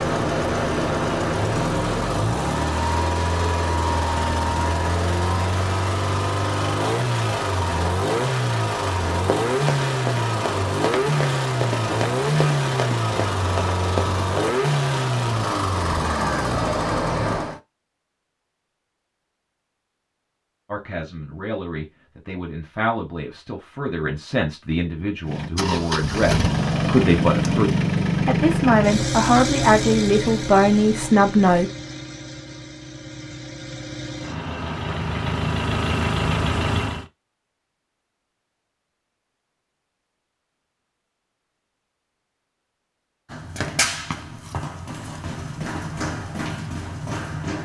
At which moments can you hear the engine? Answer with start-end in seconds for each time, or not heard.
0.0-17.6, 25.2-37.0.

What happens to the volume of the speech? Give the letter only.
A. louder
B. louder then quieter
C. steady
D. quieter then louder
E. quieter
A.